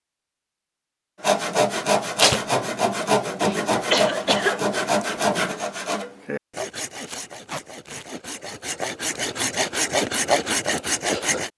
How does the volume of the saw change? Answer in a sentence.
The volume of the saw goes down, then up.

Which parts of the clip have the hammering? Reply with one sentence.
The hammering can't be heard in this clip.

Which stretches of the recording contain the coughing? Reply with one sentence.
The coughing can be heard from 3.4 to 5.0 s.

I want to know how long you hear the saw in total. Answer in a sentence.
You can hear the saw for 10 seconds altogether.